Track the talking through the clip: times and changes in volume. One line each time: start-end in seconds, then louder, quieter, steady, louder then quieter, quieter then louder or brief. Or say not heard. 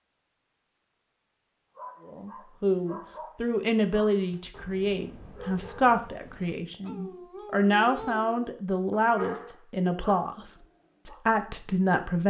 2.0-12.2 steady.